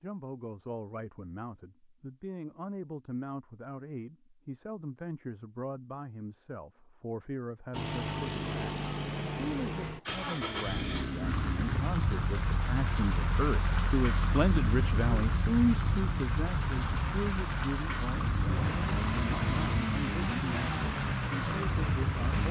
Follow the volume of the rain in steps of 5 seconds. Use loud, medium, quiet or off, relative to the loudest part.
off, off, loud, loud, loud.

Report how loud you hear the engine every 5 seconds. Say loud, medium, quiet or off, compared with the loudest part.
off, loud, loud, loud, loud.